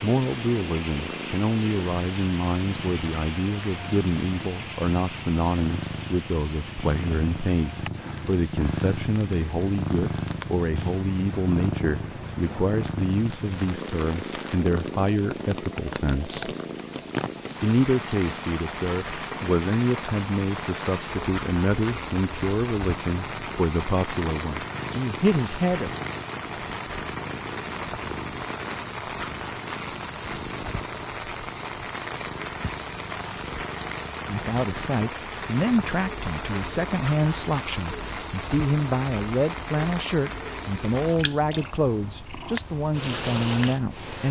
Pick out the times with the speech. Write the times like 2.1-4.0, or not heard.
0.0-16.6, 17.6-25.9, 34.2-44.2.